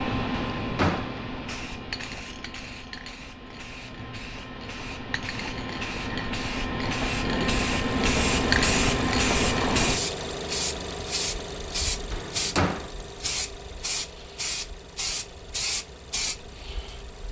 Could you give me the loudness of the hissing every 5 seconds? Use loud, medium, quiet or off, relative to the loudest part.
medium, loud, medium, medium.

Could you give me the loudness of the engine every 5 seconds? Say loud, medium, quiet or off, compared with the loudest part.
off, loud, medium, quiet.